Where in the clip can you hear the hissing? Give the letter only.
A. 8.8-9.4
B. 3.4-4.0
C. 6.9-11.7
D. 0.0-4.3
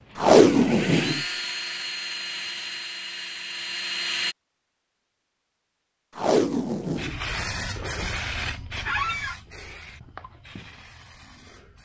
C.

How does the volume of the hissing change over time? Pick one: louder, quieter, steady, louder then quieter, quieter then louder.
quieter.